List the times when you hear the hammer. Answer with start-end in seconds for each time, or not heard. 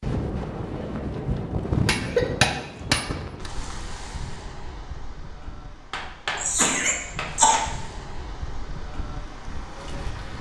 1.9-3.5, 5.9-7.7.